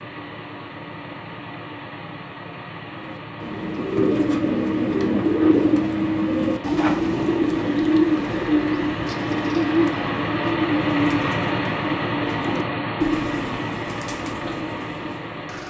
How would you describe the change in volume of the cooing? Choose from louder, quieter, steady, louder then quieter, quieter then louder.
quieter.